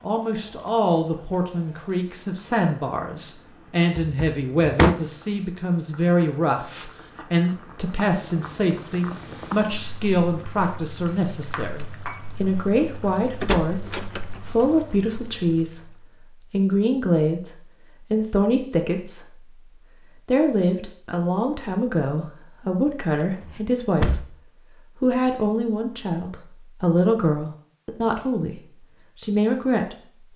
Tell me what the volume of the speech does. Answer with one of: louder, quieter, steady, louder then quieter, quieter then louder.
steady.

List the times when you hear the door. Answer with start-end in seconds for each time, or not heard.
4.0-5.0, 13.4-14.6, 23.0-24.2.